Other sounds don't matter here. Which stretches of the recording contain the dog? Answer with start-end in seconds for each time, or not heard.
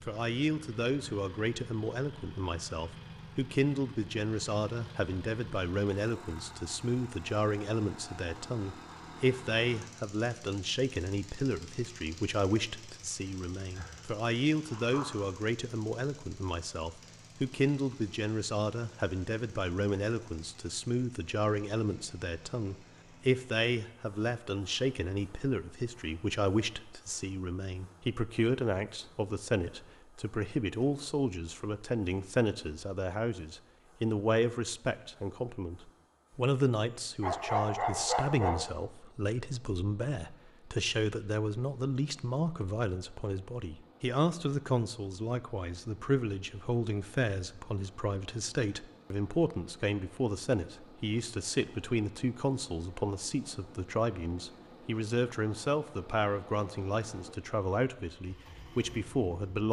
13.8-15.3, 37.2-38.6.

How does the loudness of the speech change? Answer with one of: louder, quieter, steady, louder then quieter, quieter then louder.
steady.